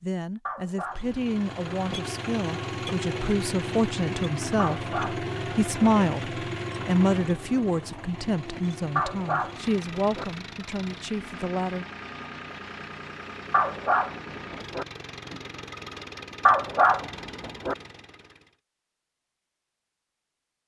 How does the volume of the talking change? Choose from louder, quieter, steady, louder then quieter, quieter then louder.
louder then quieter.